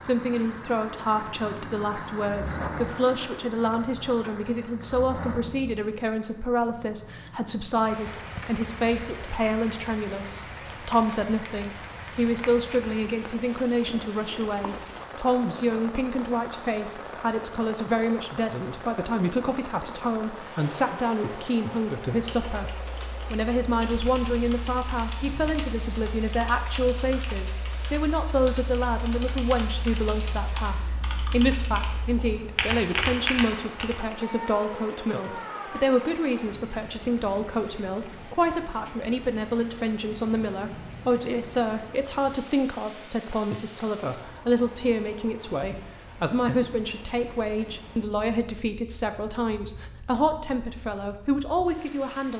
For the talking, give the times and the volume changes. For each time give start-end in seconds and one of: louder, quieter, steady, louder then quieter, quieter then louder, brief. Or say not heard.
0.0-52.3 steady.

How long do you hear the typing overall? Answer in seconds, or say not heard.
12 s.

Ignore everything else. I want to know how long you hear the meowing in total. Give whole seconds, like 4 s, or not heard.
2 s.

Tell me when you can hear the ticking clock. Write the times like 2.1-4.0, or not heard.
not heard.